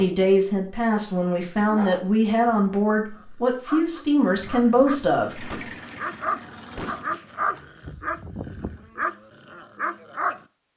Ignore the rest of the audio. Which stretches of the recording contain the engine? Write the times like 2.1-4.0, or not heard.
5.3-7.0.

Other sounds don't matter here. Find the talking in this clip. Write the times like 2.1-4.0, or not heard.
0.0-5.6.